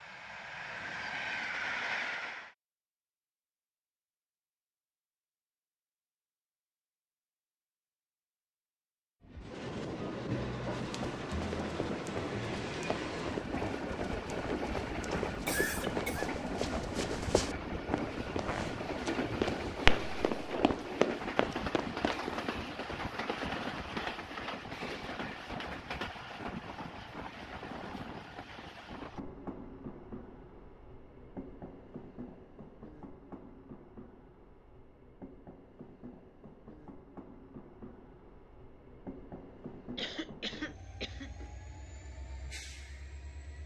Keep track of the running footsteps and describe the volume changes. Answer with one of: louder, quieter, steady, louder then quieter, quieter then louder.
louder.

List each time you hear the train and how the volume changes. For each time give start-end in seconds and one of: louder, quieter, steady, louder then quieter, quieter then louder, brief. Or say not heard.
0.0-2.5 brief
9.2-43.6 quieter.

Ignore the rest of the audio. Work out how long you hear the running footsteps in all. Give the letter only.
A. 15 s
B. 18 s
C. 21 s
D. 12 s
D.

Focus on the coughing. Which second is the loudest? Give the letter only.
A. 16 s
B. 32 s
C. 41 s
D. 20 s
A.